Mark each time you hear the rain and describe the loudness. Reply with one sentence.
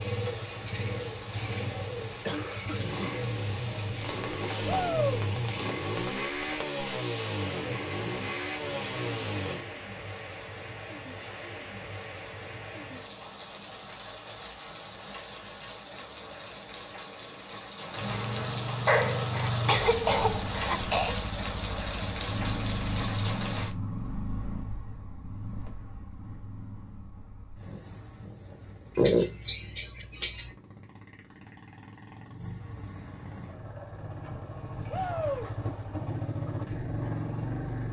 The rain can be heard from 0.0 to 23.8 s, getting louder.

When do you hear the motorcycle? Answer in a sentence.
You can hear the motorcycle from 0.0 to 9.7 s and from 17.9 to 37.8 s.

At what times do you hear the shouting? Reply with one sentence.
You can hear the shouting from 4.7 to 5.2 s and from 34.9 to 35.5 s.